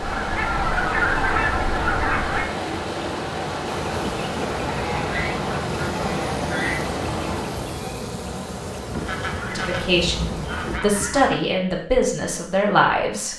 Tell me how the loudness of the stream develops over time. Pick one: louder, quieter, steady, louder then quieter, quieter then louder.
steady.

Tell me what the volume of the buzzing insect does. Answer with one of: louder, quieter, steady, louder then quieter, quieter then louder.
steady.